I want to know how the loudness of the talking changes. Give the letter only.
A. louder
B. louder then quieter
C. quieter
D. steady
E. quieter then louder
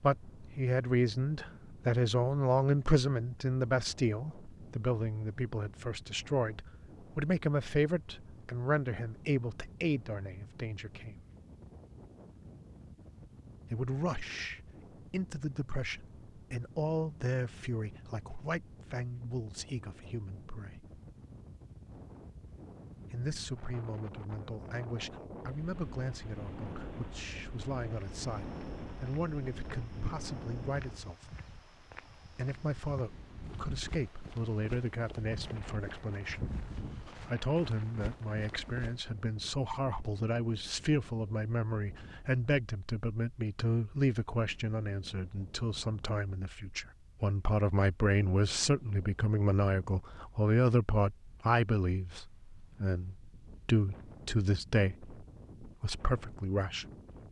E.